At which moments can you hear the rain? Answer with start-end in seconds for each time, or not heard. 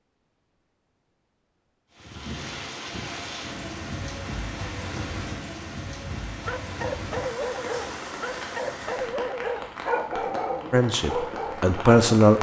1.9-12.3.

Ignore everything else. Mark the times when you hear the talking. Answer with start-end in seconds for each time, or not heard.
10.7-12.3.